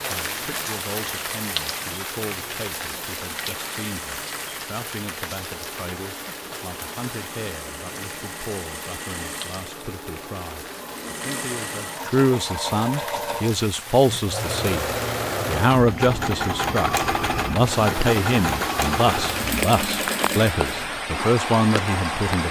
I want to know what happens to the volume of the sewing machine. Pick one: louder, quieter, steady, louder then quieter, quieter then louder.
louder.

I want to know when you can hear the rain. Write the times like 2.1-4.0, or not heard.
0.0-22.4.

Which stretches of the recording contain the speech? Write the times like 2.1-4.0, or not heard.
0.1-22.4.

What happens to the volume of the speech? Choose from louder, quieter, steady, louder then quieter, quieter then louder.
louder.